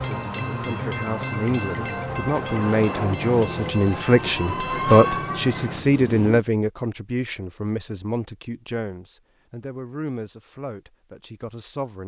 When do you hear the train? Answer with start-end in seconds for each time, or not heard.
0.0-6.4.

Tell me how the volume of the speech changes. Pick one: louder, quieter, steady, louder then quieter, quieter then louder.
louder then quieter.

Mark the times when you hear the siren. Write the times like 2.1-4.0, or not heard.
3.5-5.7.